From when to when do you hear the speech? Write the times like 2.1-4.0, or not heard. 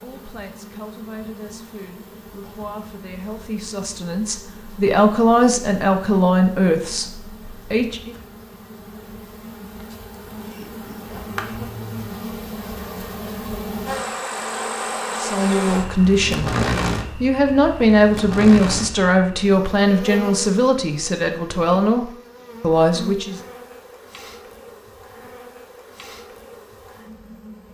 0.0-8.2, 15.2-16.5, 17.1-23.4.